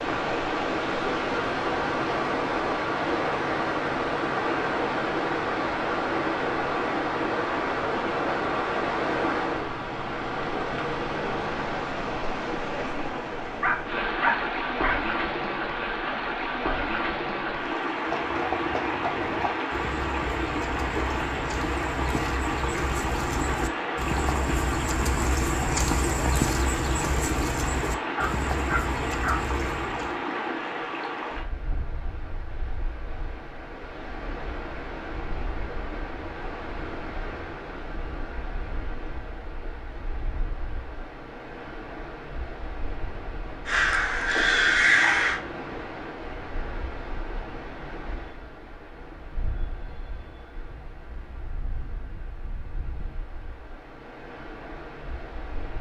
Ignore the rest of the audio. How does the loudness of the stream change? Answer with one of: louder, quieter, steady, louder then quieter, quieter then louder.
quieter.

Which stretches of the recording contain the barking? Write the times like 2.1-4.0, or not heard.
13.6-15.0, 28.1-29.4.